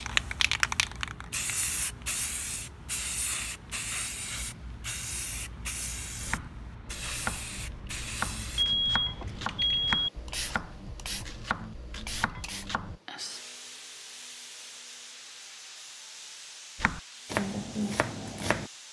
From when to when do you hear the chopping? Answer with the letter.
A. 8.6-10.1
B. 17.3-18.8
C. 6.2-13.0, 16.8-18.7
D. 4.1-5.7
C.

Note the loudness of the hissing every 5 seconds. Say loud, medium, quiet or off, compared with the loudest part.
loud, medium, medium, quiet.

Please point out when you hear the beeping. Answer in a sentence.
The beeping can be heard from 8.6 to 10.1 s.